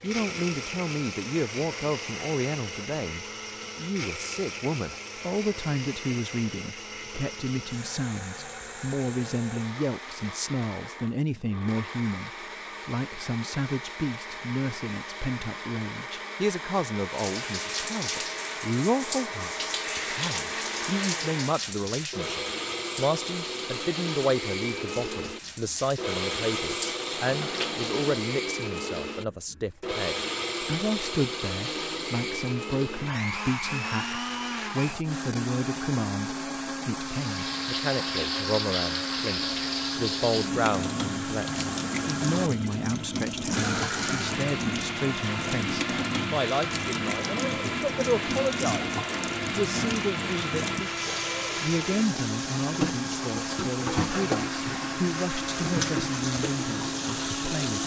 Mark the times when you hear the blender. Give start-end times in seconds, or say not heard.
0.0-57.8.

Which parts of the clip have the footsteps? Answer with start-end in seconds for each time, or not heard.
not heard.